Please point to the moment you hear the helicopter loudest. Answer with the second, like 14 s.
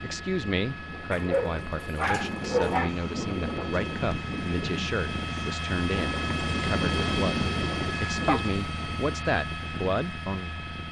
7 s.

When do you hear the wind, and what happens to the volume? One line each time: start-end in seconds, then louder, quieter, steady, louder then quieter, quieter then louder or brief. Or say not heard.
0.0-8.5 louder.